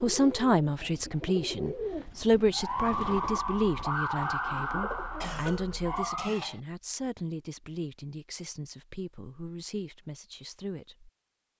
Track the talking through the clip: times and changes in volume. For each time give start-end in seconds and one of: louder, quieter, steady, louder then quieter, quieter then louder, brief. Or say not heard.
0.0-11.1 quieter.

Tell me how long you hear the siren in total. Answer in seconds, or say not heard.
4 s.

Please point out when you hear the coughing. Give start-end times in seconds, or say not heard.
5.2-6.6.